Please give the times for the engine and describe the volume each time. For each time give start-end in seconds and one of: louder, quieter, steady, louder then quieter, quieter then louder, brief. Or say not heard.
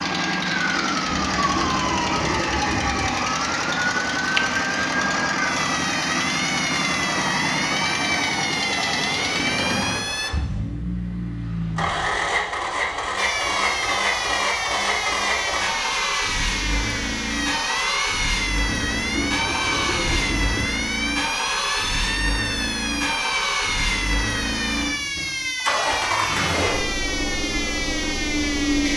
0.0-28.9 steady.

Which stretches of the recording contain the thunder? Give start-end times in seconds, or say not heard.
1.1-3.1, 18.6-20.7.